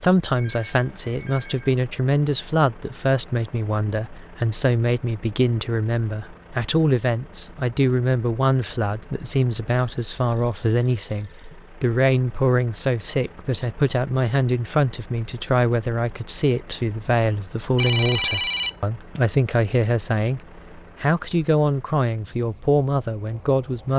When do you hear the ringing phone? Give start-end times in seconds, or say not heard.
0.3-1.7, 9.7-11.6, 17.8-19.2.